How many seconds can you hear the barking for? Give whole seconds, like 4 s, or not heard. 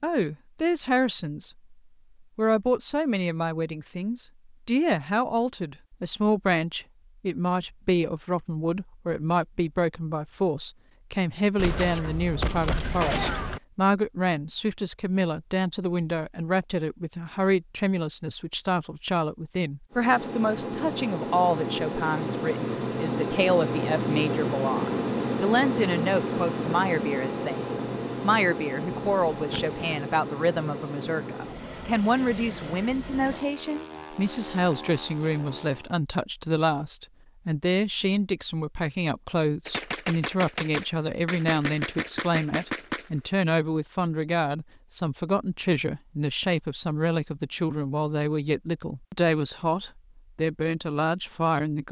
not heard.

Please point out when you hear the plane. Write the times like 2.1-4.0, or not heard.
19.9-35.9.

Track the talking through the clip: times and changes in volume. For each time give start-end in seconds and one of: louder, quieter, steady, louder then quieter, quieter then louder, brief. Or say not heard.
0.0-1.5 brief
2.4-51.8 steady.